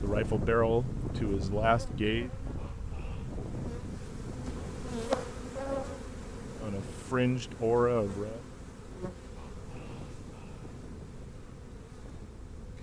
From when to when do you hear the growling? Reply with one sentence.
The growling can be heard from 2.5 to 3.4 s and from 9.3 to 10.8 s.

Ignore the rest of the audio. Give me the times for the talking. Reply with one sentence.
You can hear the talking from 0.0 to 2.3 s and from 6.6 to 8.4 s.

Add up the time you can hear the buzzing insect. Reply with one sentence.
You can hear the buzzing insect for 13 seconds altogether.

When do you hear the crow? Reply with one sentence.
The crow can't be heard in this clip.